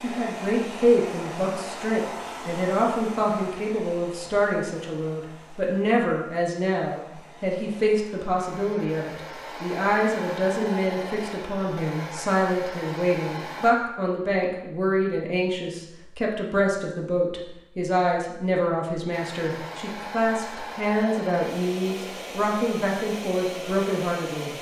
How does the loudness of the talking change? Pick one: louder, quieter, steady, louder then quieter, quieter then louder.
steady.